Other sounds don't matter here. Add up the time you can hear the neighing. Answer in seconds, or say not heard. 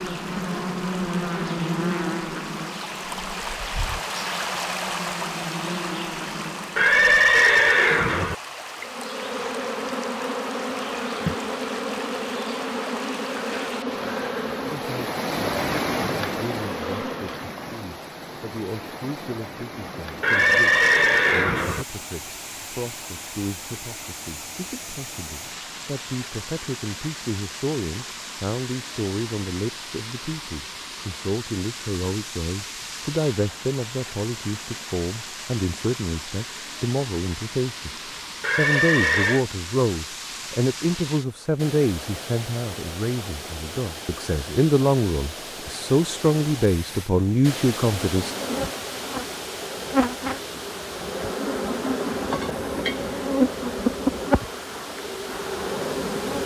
4 s.